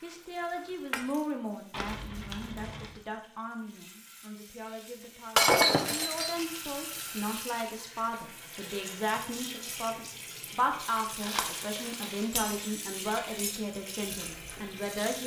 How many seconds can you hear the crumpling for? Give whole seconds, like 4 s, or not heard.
4 s.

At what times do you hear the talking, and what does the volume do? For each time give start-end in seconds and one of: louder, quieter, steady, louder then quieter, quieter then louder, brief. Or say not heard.
0.0-15.2 quieter then louder.